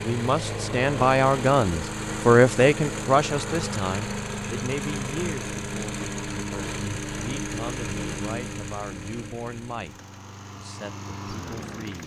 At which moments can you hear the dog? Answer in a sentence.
The dog can't be heard in this clip.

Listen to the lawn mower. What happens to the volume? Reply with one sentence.
The loudness of the lawn mower goes down.